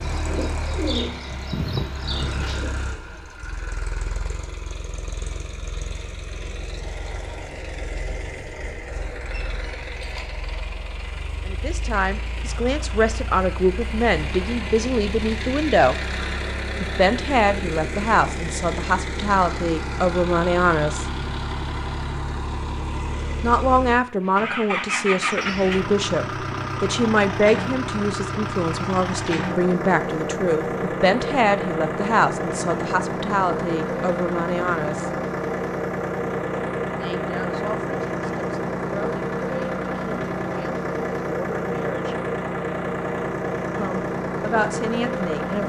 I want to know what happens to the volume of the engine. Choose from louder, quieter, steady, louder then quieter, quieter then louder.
louder.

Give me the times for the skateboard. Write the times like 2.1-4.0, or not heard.
not heard.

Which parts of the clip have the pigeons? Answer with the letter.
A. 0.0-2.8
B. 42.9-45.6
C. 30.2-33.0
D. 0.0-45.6
A.